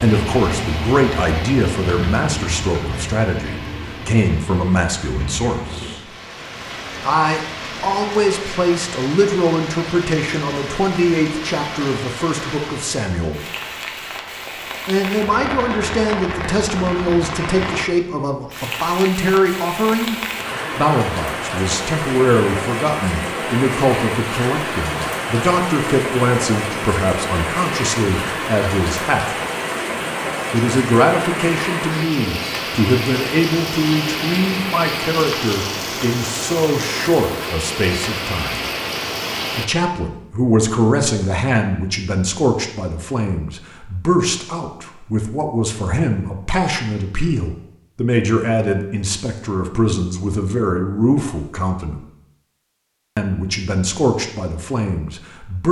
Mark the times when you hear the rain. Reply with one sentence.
The rain can be heard from 0.0 to 39.7 s.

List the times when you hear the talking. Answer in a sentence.
You can hear the talking from 0.0 to 6.0 s, from 7.0 to 13.4 s, from 14.8 to 29.2 s, from 30.5 to 38.7 s, from 39.5 to 52.0 s and from 53.1 to 55.6 s.